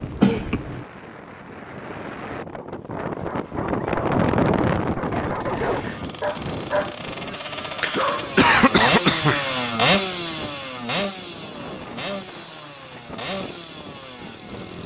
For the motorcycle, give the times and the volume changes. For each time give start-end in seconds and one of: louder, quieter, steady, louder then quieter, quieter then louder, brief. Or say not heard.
5.1-14.8 louder then quieter.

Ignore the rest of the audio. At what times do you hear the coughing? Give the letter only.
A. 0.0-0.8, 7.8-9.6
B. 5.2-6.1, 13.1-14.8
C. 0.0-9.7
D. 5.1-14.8
A.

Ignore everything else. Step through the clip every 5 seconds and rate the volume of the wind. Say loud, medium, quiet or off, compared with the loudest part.
loud, medium, quiet.